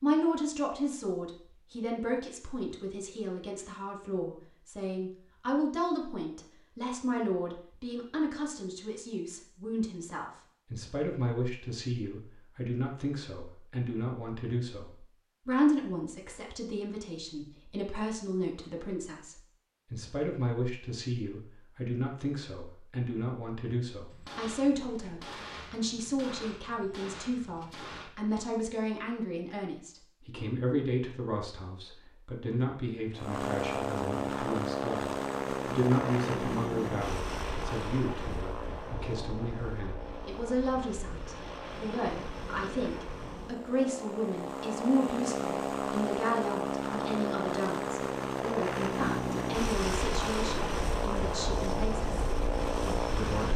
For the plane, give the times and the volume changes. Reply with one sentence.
The plane can be heard from 33.1 to 53.5 s, getting quieter then louder.